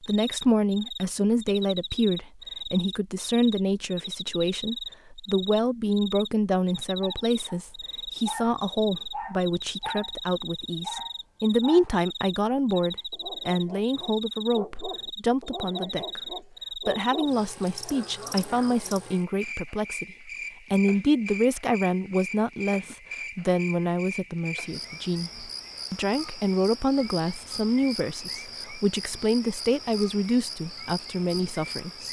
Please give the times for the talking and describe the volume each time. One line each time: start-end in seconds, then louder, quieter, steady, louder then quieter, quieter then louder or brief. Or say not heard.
0.0-32.0 steady.